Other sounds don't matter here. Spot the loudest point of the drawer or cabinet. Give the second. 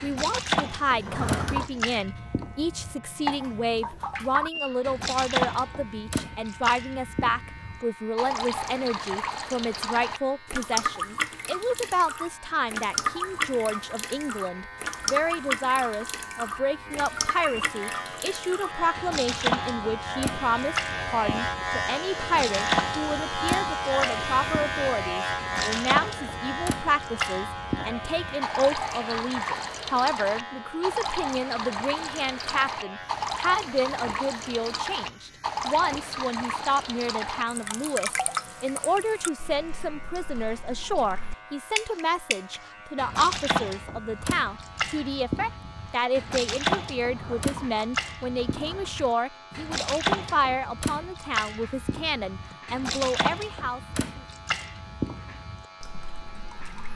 1 s.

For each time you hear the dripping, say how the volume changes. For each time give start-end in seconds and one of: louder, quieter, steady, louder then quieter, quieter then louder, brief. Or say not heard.
0.0-56.9 steady.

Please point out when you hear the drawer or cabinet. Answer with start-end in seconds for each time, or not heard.
0.9-1.7, 47.0-49.0.